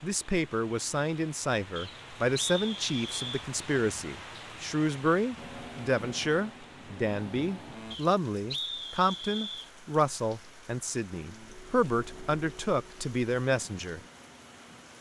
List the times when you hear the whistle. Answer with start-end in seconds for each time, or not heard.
1.8-3.5, 7.9-9.7.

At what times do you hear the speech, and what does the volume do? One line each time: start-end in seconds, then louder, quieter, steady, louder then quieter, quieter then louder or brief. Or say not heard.
0.0-14.0 steady.